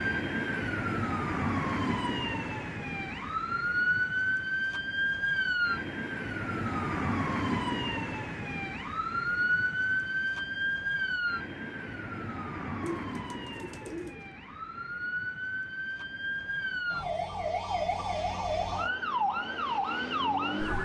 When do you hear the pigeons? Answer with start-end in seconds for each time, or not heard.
12.8-14.2.